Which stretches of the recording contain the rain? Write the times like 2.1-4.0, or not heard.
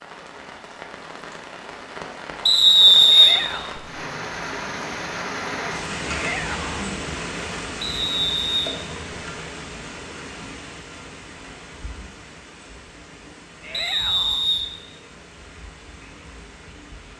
0.0-17.1.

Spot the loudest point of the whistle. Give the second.
3 s.